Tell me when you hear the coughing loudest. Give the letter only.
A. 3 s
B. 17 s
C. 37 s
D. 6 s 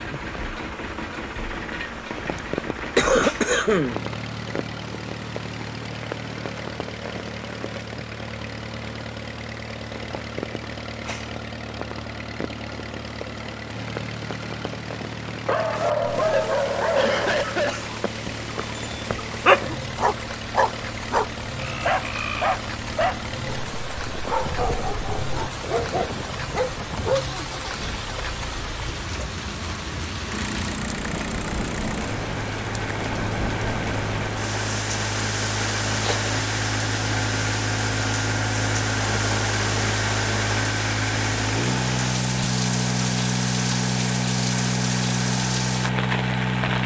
A.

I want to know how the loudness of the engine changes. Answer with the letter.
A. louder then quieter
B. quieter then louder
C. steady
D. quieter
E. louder
E.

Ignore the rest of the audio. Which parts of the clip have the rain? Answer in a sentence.
You can hear the rain from 0.0 to 46.8 s.